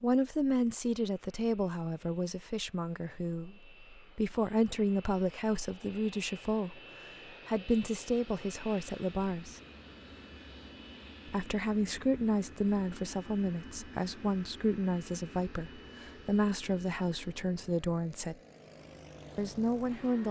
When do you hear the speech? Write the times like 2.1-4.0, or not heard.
0.0-6.8, 7.5-9.6, 11.2-18.4, 19.4-20.2.